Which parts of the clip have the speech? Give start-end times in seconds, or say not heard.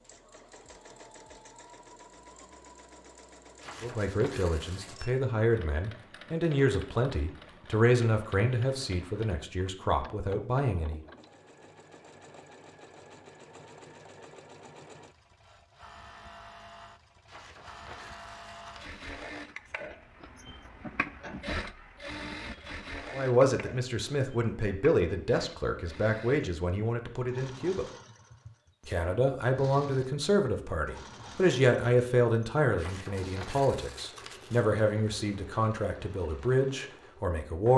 3.8-11.0, 23.1-27.9, 28.9-37.7.